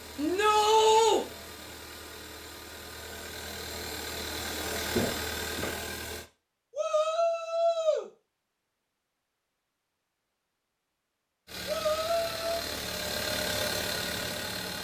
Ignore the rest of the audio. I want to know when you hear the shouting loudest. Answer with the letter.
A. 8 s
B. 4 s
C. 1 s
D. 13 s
C.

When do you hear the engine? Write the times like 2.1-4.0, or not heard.
0.0-6.3, 11.4-14.7.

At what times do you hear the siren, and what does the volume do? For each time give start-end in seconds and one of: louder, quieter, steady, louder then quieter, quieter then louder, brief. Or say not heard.
not heard.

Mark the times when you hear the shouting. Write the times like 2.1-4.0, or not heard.
0.1-1.2, 6.7-8.1, 11.7-12.6.